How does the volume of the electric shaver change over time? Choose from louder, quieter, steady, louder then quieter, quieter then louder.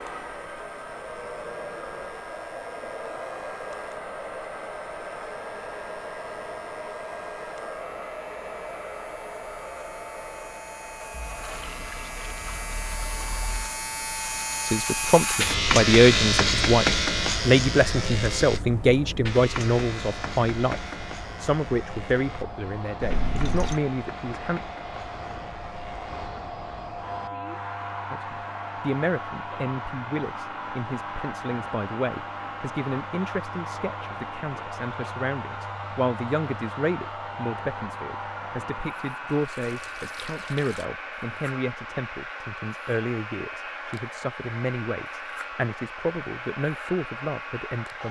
louder then quieter.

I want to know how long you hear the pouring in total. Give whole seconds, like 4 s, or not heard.
5 s.